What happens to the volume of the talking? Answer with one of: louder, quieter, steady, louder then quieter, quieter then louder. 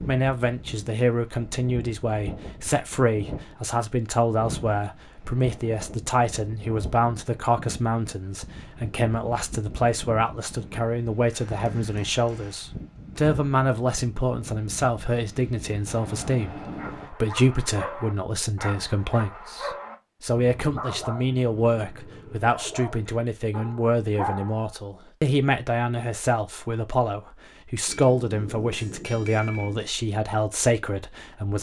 steady.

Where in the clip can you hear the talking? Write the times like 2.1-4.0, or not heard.
0.1-31.5.